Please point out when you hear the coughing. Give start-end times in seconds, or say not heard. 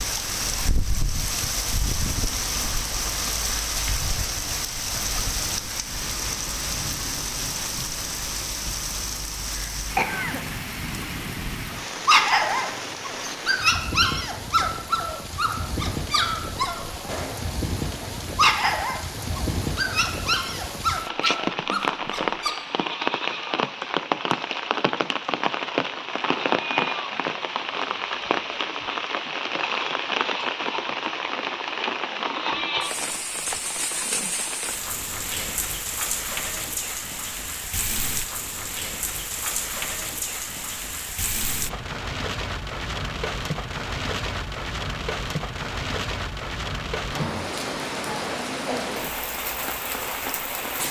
9.5-10.4.